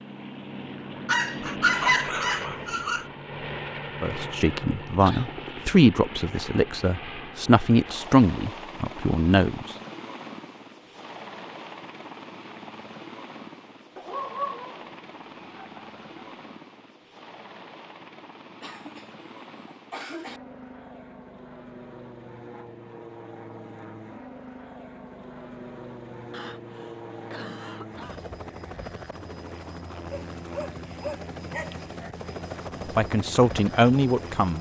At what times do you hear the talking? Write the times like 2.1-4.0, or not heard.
4.0-9.7, 33.0-34.5.